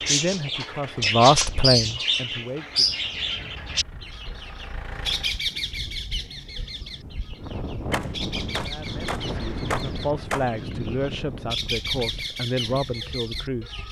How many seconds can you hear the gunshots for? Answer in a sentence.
The gunshots can be heard for 3 seconds in total.